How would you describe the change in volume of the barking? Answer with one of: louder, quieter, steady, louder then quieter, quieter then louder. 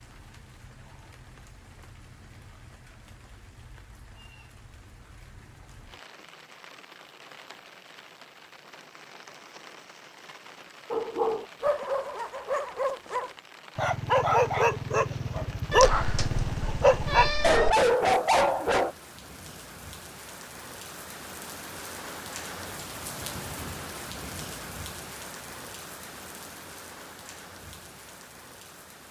louder.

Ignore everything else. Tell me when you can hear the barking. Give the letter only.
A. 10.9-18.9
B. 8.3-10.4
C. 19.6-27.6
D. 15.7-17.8
A.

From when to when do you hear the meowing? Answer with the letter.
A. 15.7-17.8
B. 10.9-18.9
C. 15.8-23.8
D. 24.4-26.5
A.